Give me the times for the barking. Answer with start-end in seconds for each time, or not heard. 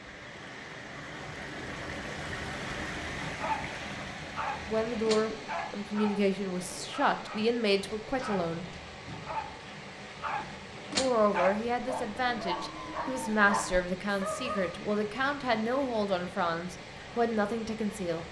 3.0-14.8.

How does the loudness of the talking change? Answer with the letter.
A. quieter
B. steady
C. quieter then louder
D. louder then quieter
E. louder
B.